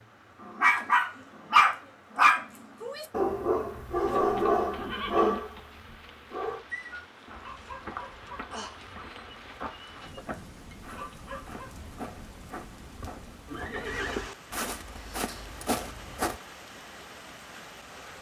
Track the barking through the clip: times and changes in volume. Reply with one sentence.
You can hear the barking from 0.5 to 11.8 s, getting quieter.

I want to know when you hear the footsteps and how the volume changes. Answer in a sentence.
You can hear the footsteps from 7.2 to 16.4 s, getting louder.